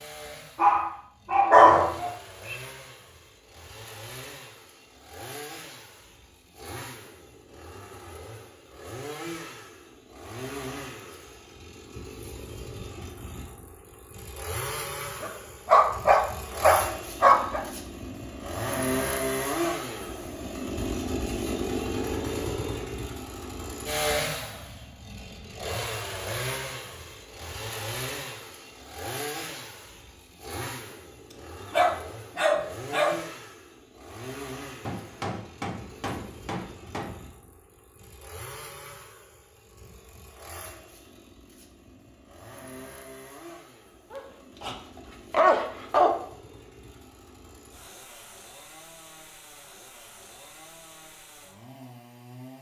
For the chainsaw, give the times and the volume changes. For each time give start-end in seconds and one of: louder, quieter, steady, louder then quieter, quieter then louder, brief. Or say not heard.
0.0-52.5 louder then quieter.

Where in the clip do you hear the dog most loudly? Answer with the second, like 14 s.
2 s.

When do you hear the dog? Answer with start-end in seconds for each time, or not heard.
0.6-2.5, 15.2-17.6, 31.7-33.2, 44.1-46.1.